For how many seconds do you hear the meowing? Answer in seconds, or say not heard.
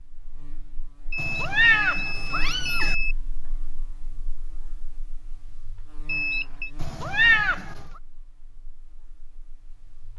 3 s.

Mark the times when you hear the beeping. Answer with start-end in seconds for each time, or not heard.
1.1-3.1, 6.0-6.7.